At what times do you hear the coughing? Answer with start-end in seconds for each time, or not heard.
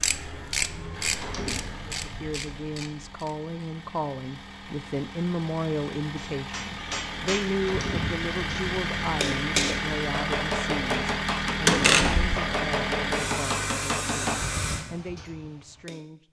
not heard.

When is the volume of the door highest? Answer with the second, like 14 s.
12 s.